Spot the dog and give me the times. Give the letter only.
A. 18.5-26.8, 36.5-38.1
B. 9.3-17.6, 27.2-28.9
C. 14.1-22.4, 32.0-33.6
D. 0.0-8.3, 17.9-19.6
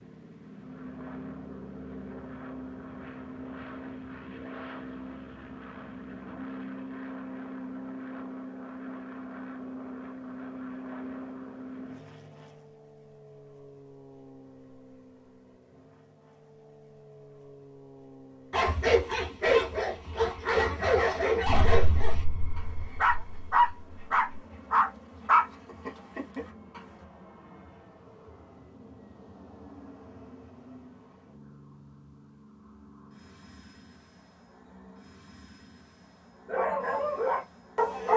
A.